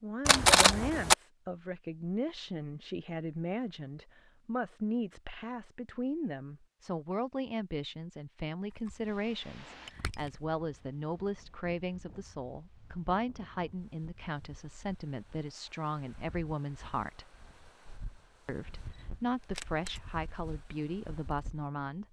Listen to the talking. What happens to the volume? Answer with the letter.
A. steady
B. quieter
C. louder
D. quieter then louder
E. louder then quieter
A.